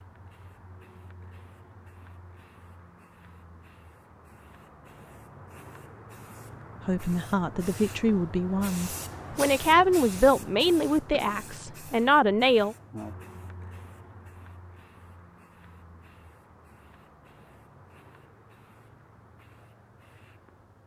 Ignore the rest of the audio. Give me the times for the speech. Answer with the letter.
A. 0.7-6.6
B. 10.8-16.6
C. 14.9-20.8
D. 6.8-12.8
D.